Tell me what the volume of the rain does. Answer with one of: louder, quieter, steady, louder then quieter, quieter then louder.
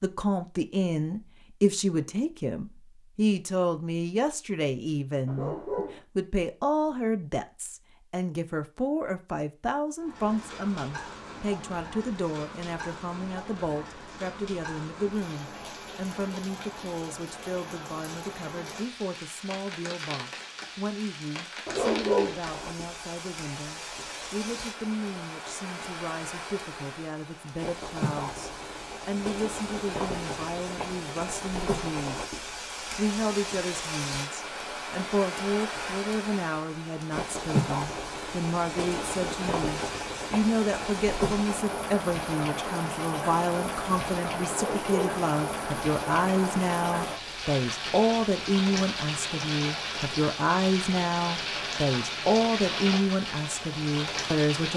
louder.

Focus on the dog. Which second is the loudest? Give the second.
22 s.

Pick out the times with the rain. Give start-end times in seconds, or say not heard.
10.0-54.7.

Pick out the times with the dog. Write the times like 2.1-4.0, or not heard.
5.2-6.0, 21.6-22.4, 44.5-45.2.